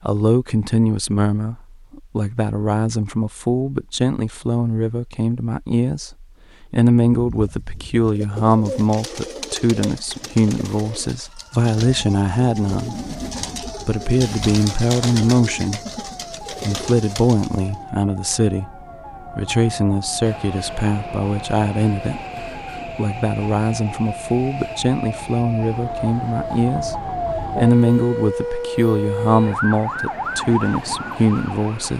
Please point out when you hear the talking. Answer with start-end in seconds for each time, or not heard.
0.1-12.9, 13.8-15.8, 16.5-18.7, 19.3-31.9.